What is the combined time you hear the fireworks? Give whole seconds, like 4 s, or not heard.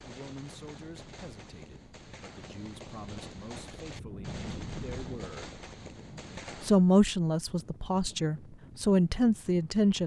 7 s.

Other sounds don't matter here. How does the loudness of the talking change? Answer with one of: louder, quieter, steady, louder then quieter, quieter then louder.
louder.